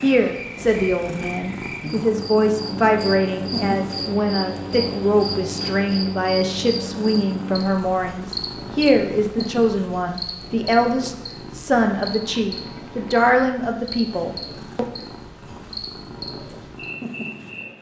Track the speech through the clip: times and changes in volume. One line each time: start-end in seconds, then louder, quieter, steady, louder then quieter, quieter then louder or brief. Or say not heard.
0.0-14.8 steady.